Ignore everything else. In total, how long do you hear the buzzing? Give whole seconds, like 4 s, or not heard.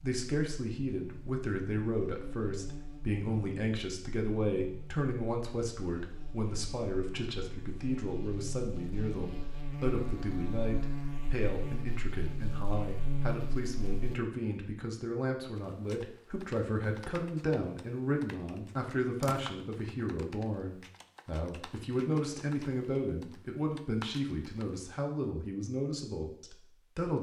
14 s.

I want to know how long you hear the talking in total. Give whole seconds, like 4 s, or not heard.
27 s.